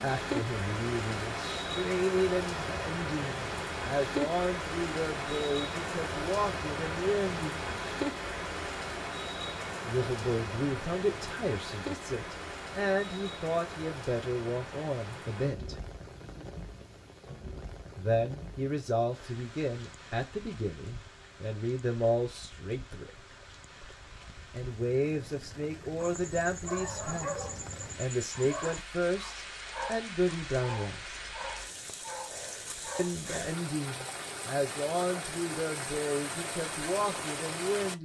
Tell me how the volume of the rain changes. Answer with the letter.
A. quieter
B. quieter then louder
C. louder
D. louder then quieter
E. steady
B.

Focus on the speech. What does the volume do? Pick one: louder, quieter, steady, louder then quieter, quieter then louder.
steady.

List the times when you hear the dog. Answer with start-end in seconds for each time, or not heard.
26.0-33.4.